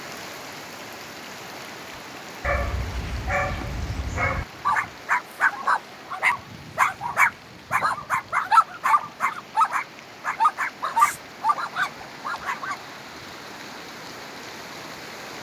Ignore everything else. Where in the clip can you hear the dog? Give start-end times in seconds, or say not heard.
2.4-12.9.